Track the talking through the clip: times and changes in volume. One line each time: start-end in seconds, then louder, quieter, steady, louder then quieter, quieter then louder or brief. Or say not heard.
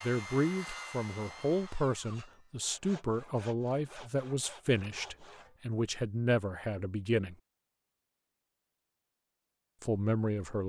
0.0-7.3 steady
9.8-10.6 brief.